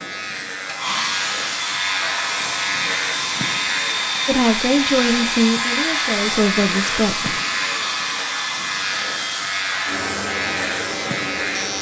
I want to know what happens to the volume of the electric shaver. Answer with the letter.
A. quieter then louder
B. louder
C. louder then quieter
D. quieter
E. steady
E.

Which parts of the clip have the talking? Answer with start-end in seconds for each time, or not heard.
4.2-7.3.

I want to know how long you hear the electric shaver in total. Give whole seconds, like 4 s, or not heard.
12 s.